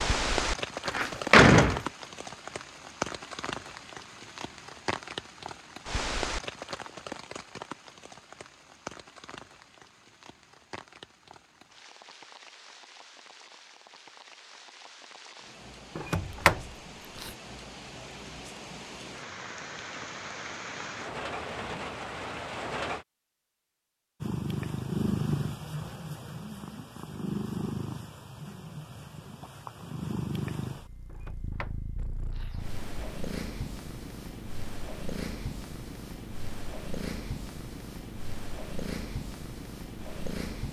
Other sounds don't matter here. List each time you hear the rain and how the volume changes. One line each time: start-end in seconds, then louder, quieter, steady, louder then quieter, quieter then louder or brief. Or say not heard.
0.0-23.1 quieter then louder.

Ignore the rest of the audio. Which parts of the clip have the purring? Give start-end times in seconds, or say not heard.
24.2-40.6.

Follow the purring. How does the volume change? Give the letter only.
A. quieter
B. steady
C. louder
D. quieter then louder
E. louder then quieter
A.